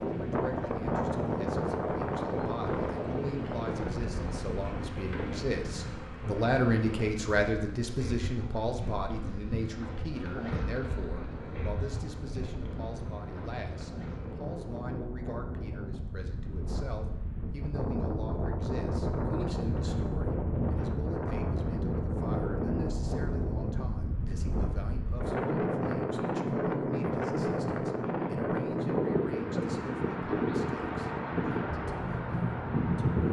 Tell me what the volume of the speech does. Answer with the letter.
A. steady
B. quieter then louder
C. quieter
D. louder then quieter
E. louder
C.